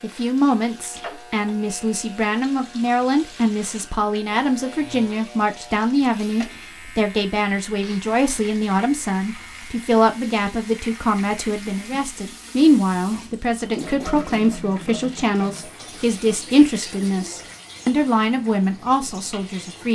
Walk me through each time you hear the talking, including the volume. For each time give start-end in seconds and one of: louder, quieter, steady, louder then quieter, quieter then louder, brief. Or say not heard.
0.0-19.8 steady.